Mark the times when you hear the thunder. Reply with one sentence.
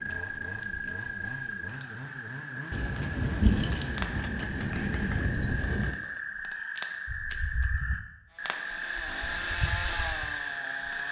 You can hear the thunder from 2.7 to 6.0 s.